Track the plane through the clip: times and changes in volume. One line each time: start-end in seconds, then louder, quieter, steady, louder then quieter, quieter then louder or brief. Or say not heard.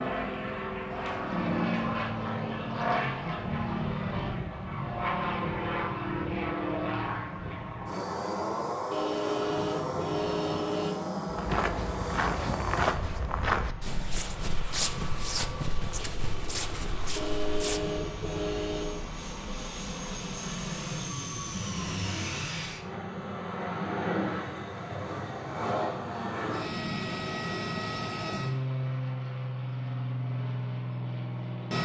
0.0-31.7 quieter then louder.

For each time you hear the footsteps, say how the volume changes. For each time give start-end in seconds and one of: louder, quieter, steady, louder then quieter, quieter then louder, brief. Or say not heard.
11.2-17.9 quieter.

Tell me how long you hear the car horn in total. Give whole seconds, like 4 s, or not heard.
4 s.